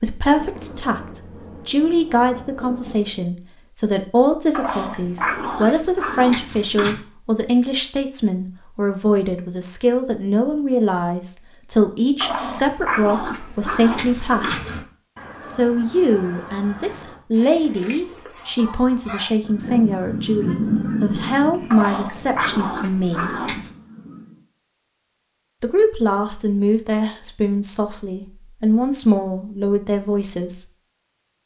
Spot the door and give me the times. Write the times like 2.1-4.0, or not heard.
not heard.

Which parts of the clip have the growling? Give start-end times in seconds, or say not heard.
4.5-7.0, 12.2-14.8, 21.7-23.7.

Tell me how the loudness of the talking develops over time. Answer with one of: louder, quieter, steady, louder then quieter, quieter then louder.
steady.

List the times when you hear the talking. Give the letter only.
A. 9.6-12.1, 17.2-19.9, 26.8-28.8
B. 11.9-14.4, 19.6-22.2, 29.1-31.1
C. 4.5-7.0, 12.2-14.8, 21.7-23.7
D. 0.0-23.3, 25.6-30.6
D.